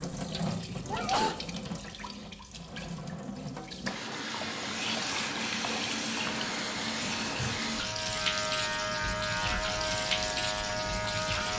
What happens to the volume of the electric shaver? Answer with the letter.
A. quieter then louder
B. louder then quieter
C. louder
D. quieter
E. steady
C.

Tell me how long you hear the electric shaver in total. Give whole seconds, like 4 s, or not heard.
5 s.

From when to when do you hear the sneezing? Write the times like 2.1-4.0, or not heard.
0.8-1.4.